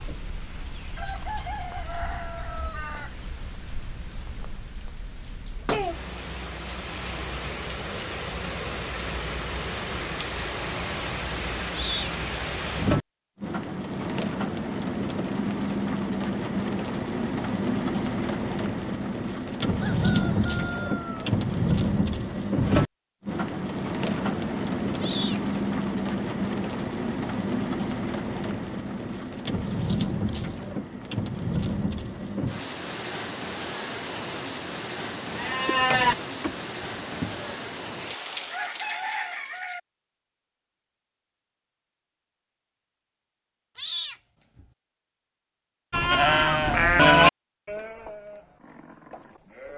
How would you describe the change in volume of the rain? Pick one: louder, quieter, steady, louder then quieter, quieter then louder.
louder then quieter.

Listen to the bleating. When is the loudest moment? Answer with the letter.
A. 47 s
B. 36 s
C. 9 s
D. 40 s
A.